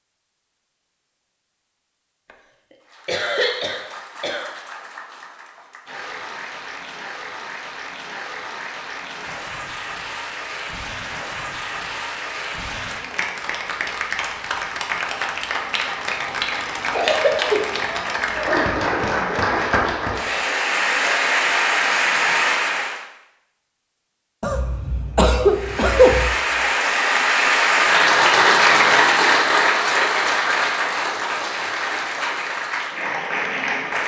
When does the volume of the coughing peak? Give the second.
26 s.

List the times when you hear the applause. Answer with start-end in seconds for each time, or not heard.
2.8-23.0, 25.5-34.0.